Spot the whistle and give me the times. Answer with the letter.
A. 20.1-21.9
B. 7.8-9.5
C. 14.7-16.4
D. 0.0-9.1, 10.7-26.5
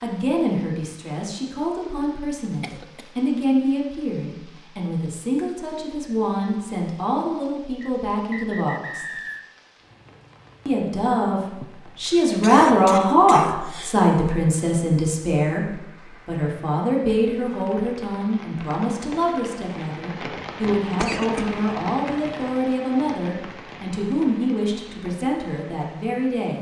B.